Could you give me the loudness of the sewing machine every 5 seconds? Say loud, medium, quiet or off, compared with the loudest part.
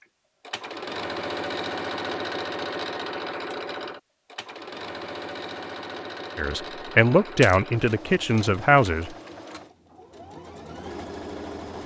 loud, medium, medium.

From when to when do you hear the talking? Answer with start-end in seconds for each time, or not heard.
6.3-9.1.